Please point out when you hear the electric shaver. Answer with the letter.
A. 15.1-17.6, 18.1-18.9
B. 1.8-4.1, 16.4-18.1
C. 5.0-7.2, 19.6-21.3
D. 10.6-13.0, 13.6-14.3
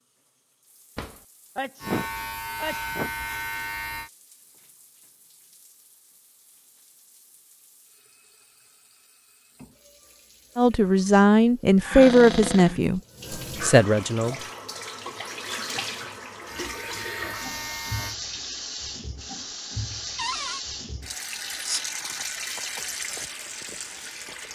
B.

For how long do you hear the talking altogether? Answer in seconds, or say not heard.
3 s.